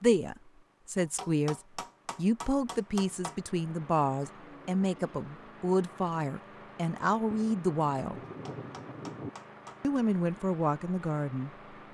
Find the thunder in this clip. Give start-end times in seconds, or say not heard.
7.3-9.3.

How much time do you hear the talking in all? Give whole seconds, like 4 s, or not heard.
10 s.